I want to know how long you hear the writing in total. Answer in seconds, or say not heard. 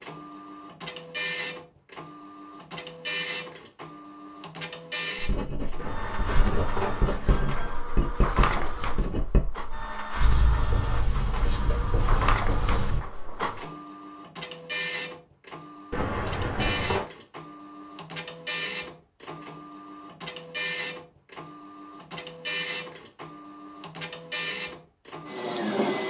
8 s.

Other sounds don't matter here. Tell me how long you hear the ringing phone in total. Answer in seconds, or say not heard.
3 s.